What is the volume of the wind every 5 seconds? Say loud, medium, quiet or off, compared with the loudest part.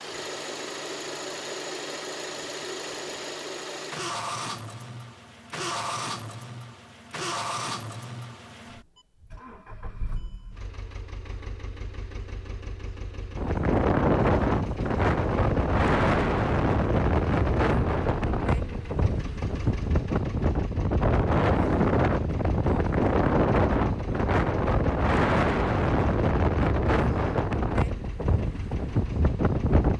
off, off, loud, loud, loud, loud.